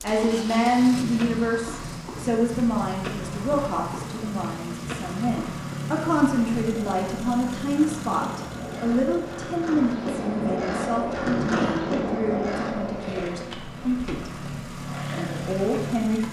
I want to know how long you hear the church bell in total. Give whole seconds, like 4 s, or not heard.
not heard.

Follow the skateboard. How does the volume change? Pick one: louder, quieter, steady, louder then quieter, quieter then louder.
louder then quieter.